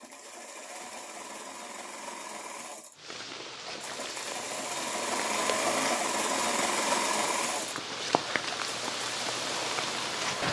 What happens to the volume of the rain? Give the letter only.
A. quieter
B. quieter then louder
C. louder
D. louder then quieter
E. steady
C.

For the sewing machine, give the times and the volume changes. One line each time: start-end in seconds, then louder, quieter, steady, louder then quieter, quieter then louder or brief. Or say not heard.
0.0-10.4 louder then quieter.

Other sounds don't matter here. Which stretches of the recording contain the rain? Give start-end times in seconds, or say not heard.
3.0-10.4.